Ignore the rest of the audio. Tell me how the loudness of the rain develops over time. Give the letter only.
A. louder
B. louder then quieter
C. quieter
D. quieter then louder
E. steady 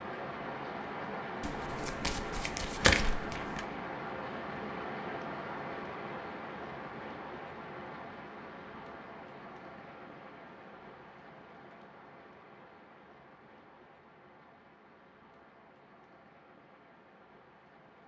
C.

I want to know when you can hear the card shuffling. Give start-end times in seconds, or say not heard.
1.4-3.6.